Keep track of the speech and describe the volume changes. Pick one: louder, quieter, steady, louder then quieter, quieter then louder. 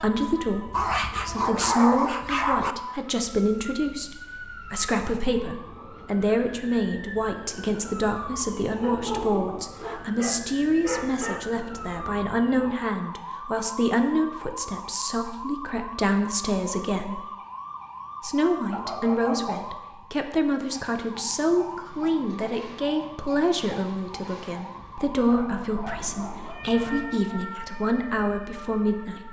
steady.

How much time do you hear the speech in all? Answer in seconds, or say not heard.
28 s.